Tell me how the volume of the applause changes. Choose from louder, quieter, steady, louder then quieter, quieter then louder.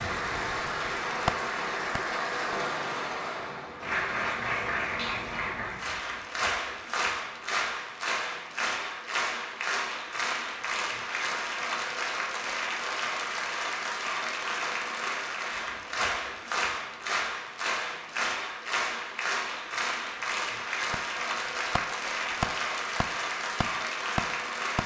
steady.